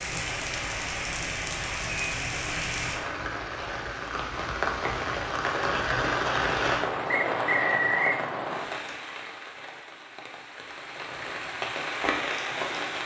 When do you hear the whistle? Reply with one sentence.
You can hear the whistle from 7.0 to 8.2 s.